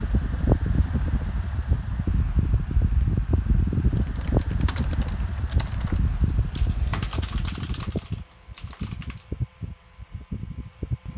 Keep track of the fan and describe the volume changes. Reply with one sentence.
The loudness of the fan goes down.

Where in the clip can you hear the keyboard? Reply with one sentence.
You can hear the keyboard from 3.9 to 9.3 s.